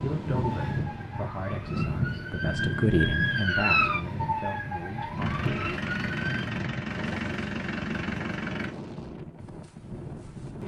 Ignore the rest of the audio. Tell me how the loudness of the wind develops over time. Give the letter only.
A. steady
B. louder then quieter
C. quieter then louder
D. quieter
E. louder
D.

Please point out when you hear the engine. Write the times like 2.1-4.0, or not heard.
5.2-8.8.